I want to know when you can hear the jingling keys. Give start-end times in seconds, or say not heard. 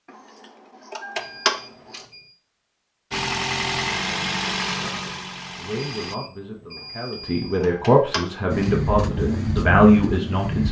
0.1-2.0, 6.8-8.8.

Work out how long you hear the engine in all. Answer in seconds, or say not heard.
5 s.